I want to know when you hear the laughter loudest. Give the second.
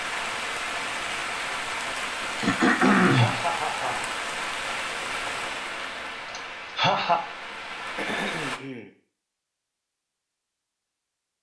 7 s.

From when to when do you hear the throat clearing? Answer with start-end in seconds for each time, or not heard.
2.4-3.4, 8.0-8.9.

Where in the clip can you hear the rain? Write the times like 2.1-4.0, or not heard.
0.0-8.6.